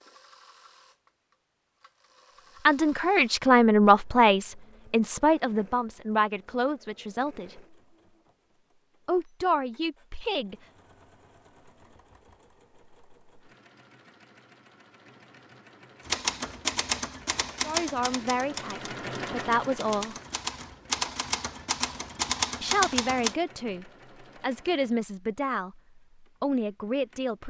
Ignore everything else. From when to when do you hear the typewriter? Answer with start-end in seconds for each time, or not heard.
16.1-23.4.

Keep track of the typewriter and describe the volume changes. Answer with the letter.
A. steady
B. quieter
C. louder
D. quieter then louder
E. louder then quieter
D.